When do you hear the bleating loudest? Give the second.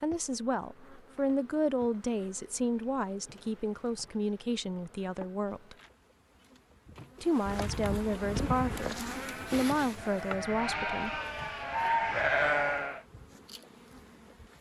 12 s.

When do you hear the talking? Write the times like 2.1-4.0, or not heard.
0.0-5.8, 7.2-11.2.